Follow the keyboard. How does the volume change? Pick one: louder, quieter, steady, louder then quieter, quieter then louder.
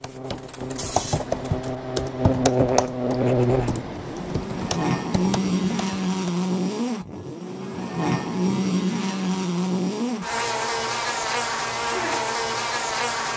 quieter.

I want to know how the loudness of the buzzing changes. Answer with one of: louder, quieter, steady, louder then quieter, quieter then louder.
steady.